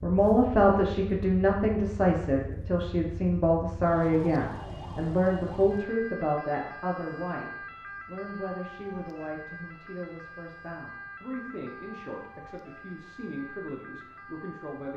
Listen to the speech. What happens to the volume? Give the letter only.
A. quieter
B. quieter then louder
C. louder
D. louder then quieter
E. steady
A.